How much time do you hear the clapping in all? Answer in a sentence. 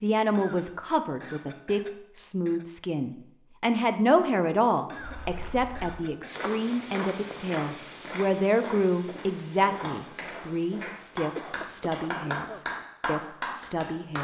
You can hear the clapping for 4 seconds altogether.